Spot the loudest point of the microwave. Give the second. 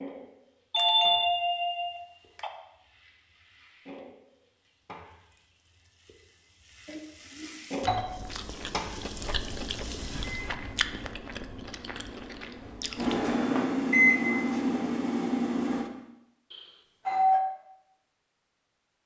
14 s.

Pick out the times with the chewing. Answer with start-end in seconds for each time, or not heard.
7.8-13.3.